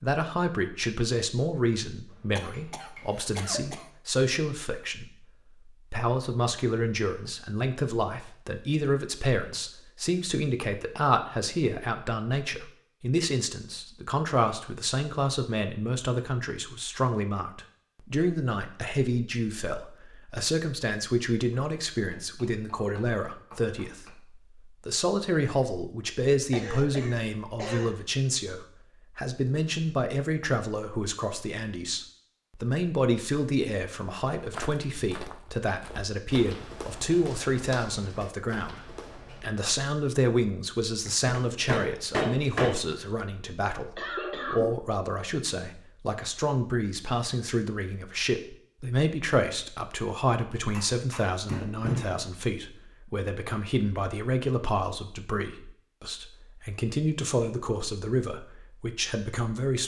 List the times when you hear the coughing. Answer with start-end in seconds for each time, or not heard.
2.4-3.9, 26.5-28.0, 44.0-44.9.